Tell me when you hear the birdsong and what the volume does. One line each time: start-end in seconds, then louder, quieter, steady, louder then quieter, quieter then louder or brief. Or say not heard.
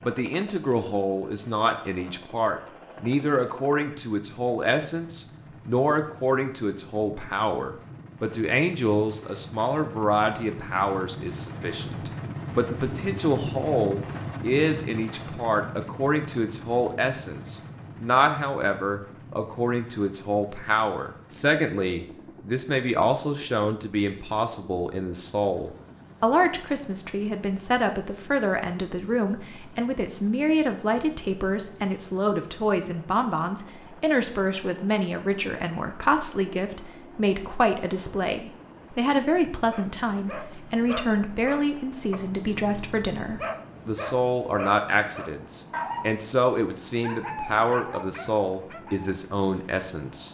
not heard.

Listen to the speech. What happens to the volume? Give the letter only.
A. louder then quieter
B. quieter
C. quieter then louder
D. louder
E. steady
E.